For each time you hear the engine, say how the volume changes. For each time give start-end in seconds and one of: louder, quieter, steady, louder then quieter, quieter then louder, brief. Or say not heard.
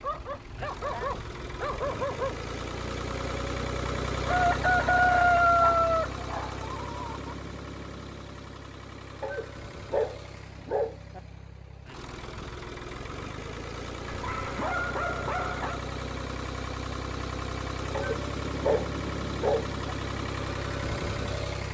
0.0-21.7 quieter then louder.